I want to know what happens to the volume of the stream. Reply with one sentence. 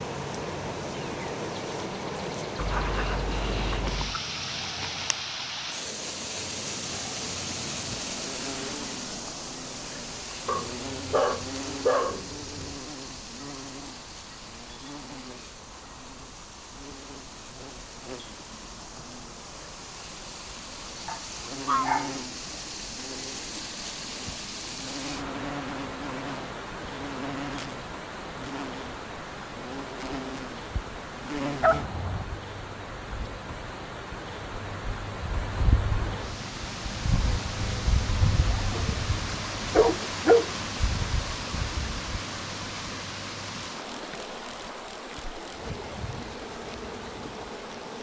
The loudness of the stream goes down, then up.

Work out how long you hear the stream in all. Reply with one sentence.
The stream can be heard for 48 seconds in total.